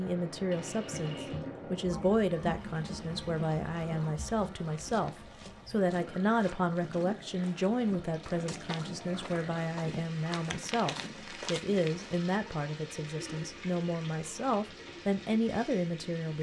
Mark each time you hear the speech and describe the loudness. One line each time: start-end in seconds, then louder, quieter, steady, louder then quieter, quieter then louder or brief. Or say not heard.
0.0-16.3 steady.